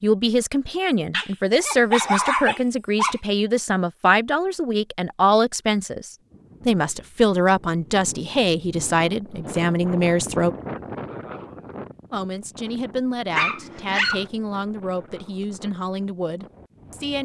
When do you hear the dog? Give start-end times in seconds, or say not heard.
1.1-3.2, 13.3-14.3.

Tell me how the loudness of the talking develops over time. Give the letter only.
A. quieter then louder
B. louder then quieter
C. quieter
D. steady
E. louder
C.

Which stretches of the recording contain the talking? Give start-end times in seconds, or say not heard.
0.0-10.6, 12.1-17.2.